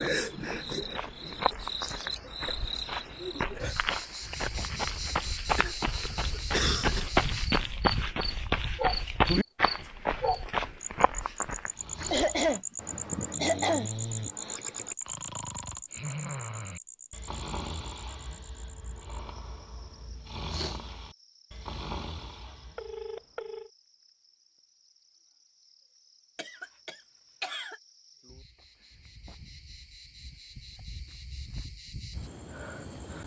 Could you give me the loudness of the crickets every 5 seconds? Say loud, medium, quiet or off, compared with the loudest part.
loud, loud, loud, medium, quiet, quiet, medium.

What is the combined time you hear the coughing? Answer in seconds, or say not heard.
5 s.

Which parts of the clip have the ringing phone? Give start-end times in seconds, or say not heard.
22.8-23.7.